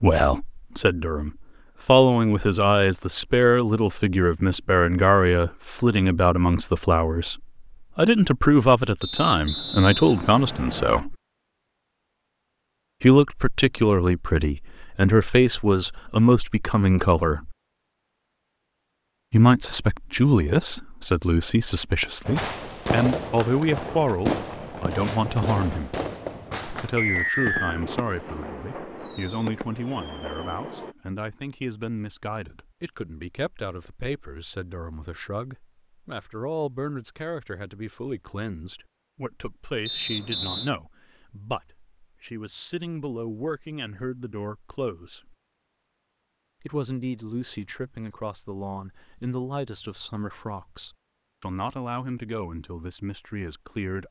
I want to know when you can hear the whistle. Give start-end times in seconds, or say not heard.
9.0-11.0, 26.9-27.8, 39.9-40.7.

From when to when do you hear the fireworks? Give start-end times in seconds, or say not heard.
22.2-30.9.